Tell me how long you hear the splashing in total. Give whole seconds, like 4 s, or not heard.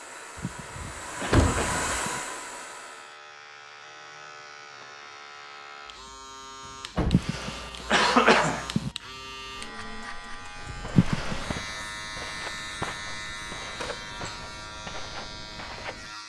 not heard.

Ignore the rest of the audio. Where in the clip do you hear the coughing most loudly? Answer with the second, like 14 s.
8 s.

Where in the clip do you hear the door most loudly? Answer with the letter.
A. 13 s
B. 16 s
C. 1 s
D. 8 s
C.